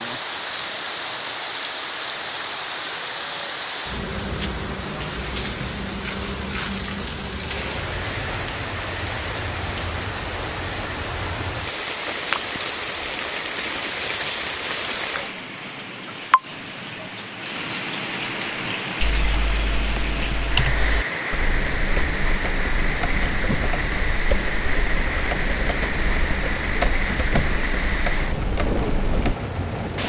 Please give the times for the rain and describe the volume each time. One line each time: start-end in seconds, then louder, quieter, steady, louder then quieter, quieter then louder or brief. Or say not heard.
0.0-30.0 steady.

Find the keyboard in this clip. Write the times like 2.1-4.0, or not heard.
19.0-29.4.